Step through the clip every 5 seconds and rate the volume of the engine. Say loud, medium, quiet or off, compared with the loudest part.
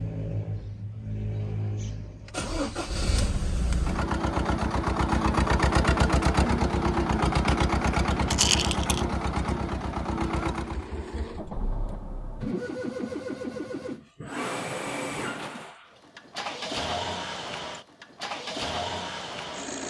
medium, loud, medium, medium.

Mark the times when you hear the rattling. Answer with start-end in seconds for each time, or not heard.
8.2-9.1.